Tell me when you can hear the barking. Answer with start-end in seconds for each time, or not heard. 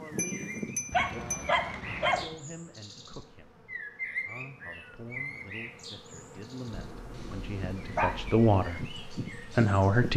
0.9-2.2, 6.7-8.5.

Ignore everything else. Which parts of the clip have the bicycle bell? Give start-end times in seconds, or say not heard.
0.1-1.5.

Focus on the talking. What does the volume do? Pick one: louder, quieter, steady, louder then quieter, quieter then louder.
louder.